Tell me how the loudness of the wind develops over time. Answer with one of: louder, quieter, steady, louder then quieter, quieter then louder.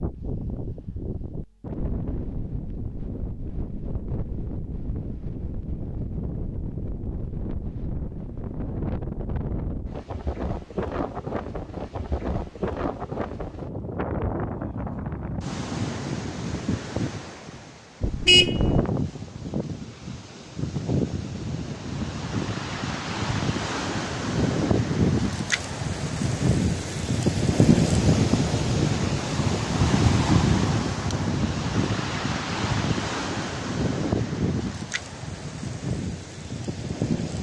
louder.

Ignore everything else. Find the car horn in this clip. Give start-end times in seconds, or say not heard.
18.0-18.9.